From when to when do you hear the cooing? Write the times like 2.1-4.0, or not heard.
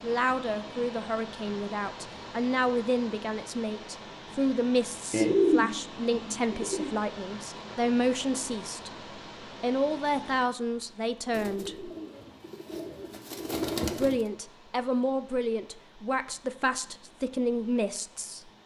5.1-6.9, 11.3-14.2.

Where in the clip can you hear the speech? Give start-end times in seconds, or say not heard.
0.0-8.9, 9.6-11.9, 13.8-18.5.